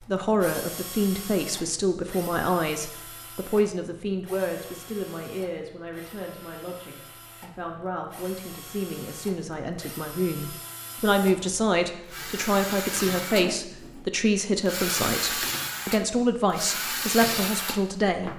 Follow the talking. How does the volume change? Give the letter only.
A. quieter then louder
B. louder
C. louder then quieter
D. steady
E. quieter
A.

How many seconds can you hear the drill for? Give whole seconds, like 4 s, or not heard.
18 s.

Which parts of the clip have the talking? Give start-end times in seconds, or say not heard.
0.1-18.3.